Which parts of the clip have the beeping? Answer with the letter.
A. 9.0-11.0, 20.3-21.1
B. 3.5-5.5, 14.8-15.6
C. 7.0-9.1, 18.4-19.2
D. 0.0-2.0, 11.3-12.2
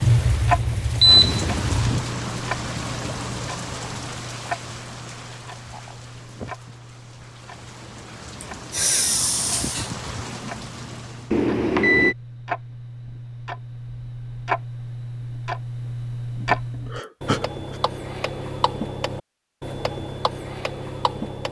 D.